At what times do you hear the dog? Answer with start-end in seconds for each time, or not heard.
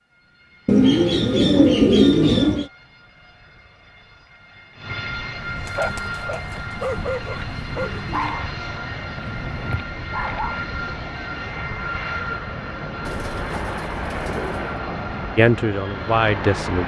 5.7-10.7.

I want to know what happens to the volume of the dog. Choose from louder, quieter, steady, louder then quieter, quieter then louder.
quieter then louder.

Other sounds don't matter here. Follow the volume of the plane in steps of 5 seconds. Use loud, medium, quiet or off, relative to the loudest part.
quiet, loud, loud, loud.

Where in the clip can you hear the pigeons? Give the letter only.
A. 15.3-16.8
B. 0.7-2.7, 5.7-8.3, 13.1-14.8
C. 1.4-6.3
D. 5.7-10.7
B.